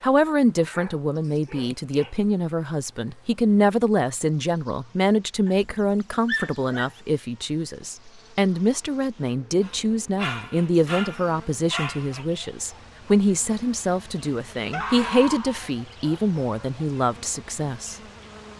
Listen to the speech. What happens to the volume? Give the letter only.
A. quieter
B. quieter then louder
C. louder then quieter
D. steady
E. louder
D.